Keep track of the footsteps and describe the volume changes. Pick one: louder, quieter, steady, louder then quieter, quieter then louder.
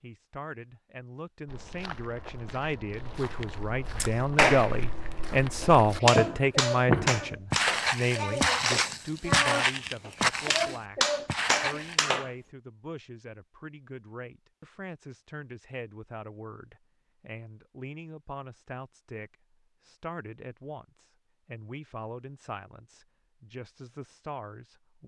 louder.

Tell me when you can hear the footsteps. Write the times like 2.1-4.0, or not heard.
1.4-12.0.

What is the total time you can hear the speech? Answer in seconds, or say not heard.
25 s.